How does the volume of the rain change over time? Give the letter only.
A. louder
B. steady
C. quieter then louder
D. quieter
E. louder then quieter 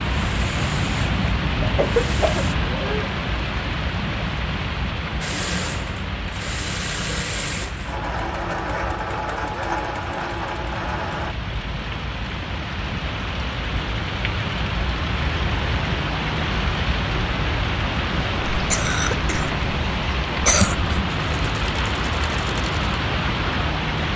C.